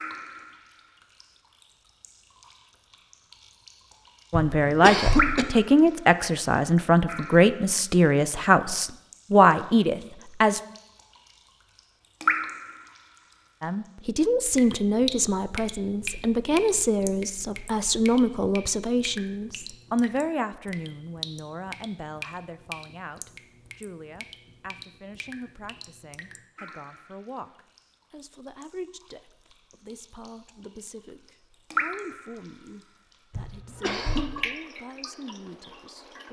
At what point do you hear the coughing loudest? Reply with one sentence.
The loudest moment of the coughing is at 5 seconds.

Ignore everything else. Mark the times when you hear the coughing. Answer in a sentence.
You can hear the coughing from 4.3 to 5.5 s and from 33.3 to 34.4 s.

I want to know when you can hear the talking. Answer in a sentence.
The talking can be heard from 4.3 to 10.6 s and from 13.6 to 36.1 s.